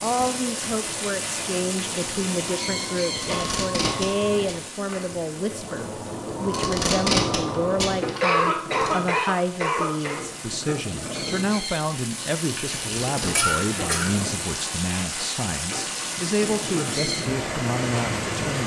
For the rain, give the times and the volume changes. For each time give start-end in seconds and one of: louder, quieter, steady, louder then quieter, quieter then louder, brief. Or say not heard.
0.0-18.6 quieter then louder.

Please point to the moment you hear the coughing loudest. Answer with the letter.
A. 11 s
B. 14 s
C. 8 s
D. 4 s
C.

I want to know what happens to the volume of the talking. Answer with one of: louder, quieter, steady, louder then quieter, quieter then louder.
steady.